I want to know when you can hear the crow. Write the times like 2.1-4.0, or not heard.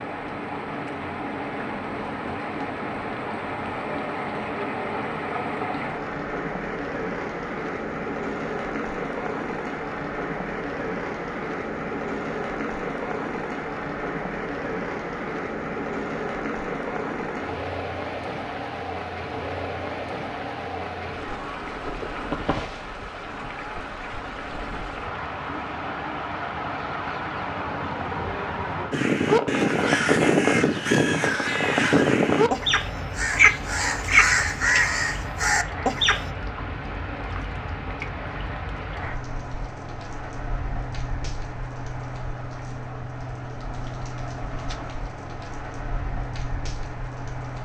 28.9-36.2.